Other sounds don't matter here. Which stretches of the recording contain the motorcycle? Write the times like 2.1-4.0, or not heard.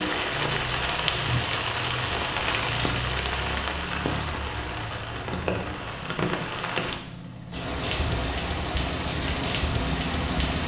0.1-10.6.